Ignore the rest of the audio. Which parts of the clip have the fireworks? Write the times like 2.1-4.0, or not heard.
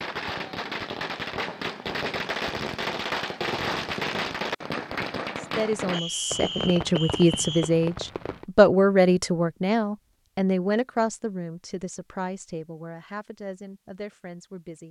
0.0-8.4.